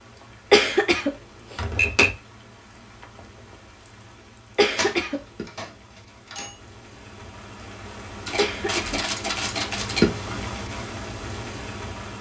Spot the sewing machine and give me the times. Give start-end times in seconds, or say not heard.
not heard.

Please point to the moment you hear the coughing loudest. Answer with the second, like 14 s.
1 s.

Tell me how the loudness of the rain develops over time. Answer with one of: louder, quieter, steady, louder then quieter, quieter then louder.
louder.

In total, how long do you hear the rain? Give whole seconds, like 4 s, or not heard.
12 s.